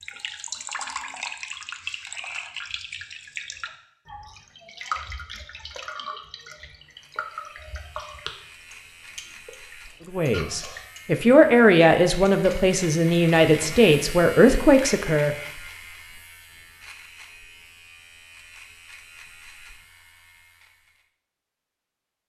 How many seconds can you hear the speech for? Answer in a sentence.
You can hear the speech for 5 seconds altogether.